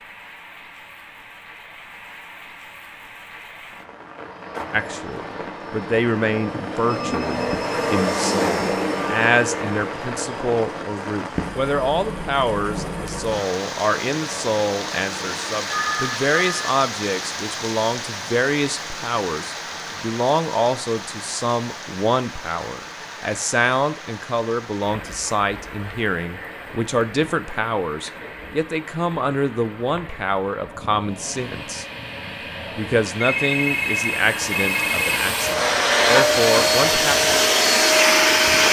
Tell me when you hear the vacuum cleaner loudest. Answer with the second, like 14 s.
38 s.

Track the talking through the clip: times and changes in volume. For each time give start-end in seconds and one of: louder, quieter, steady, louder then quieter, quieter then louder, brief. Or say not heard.
4.7-31.9 steady
32.8-37.1 quieter then louder.